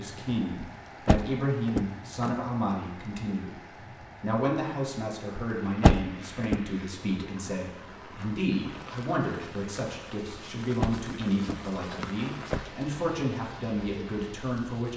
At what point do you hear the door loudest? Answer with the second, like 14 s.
6 s.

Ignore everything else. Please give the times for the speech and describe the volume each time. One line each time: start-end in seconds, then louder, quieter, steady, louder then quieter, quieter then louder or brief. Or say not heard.
0.0-14.9 steady.